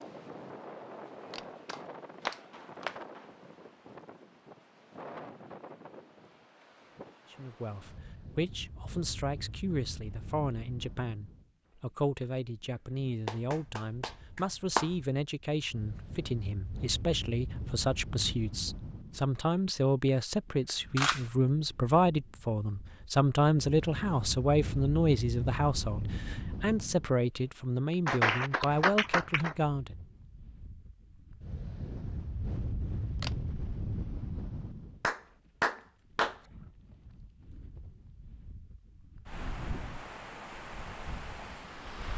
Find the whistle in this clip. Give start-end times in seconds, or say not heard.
not heard.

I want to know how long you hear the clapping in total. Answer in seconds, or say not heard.
6 s.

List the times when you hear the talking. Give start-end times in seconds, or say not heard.
7.3-30.1.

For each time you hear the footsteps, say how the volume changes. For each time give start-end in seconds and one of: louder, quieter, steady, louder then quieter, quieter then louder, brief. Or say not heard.
not heard.